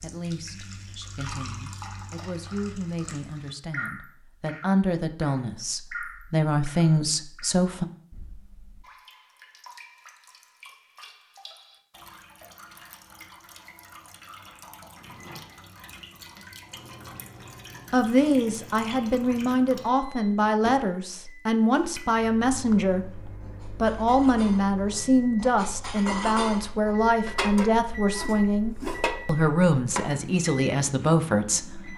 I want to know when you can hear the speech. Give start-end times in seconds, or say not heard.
0.0-7.8, 17.9-31.9.